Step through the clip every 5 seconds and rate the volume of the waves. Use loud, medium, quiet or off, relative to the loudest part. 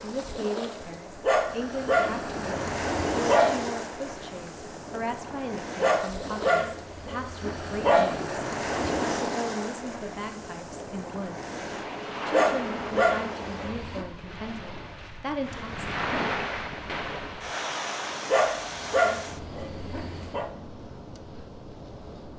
loud, loud, loud, loud, medium.